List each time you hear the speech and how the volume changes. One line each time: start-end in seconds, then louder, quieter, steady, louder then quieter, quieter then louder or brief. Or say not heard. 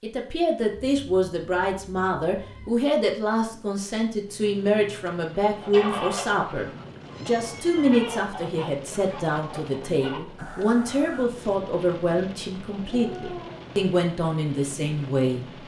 0.0-15.4 steady.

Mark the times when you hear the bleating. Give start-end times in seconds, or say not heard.
not heard.